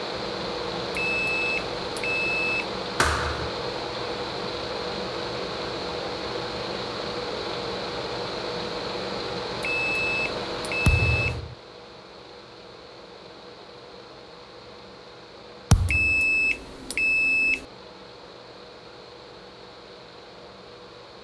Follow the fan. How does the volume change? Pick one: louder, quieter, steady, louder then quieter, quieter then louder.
quieter.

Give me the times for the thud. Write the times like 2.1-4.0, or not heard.
3.0-3.5, 10.8-11.6, 15.7-16.2.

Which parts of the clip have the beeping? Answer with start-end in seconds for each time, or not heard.
0.9-2.6, 9.6-11.4, 15.8-17.6.